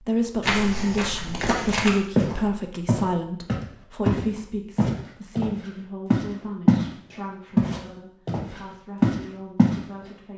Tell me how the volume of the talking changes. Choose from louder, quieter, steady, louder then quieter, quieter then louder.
quieter.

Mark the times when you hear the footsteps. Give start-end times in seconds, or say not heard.
0.4-6.8, 7.5-9.8.